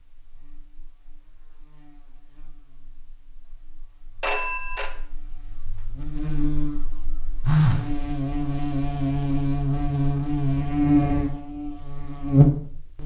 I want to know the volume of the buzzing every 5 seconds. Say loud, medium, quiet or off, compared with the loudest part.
quiet, medium, loud.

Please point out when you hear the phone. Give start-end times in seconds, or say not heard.
4.2-4.9, 7.5-7.9.